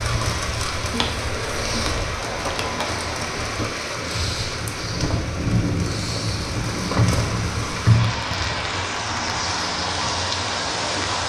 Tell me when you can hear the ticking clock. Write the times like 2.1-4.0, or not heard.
not heard.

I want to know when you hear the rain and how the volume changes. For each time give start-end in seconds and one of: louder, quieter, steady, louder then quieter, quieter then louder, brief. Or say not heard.
0.0-11.2 steady.